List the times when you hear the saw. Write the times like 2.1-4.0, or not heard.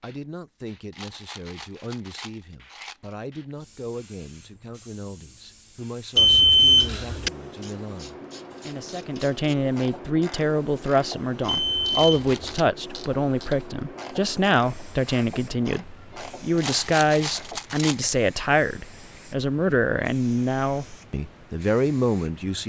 not heard.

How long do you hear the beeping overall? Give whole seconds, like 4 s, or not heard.
2 s.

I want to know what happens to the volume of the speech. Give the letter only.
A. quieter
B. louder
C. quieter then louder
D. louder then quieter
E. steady
B.